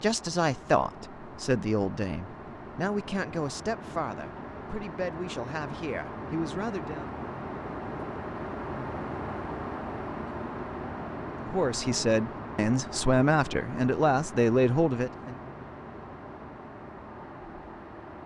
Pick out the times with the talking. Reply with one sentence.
You can hear the talking from 0.0 to 7.1 s and from 11.4 to 15.3 s.